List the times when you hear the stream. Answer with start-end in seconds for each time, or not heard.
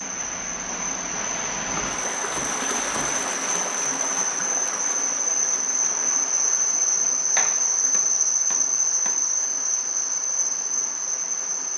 0.0-11.7.